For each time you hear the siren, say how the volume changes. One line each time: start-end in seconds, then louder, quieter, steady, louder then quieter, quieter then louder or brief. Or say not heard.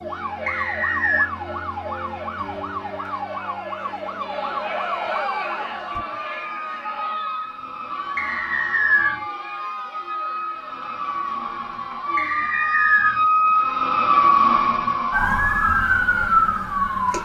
0.0-17.2 louder.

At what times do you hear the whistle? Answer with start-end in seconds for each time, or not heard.
0.5-1.2, 8.2-9.2, 12.2-13.2.